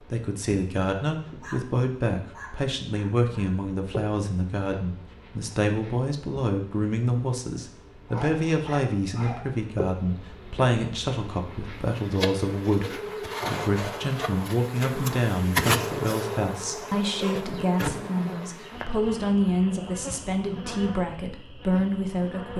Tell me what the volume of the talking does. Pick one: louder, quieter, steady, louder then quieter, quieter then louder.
steady.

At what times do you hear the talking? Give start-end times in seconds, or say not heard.
0.1-22.5.